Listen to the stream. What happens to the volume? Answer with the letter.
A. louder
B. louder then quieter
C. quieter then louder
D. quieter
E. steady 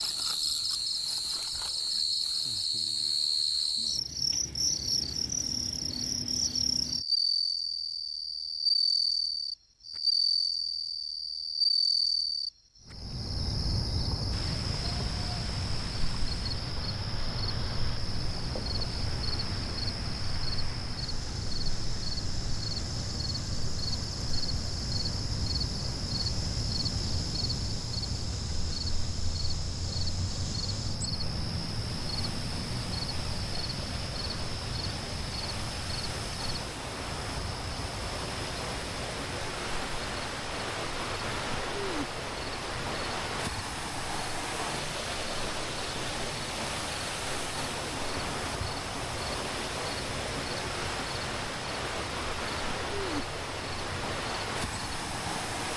A.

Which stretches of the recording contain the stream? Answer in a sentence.
The stream can be heard from 14.3 to 55.7 s.